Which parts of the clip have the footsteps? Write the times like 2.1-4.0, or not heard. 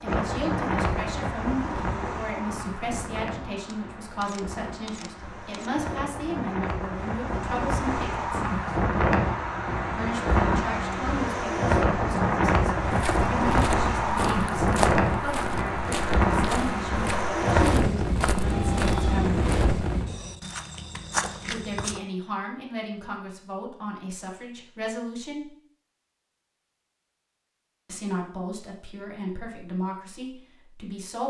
12.8-22.0.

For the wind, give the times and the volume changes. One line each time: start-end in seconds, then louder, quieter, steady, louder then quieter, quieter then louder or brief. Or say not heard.
0.0-20.1 louder.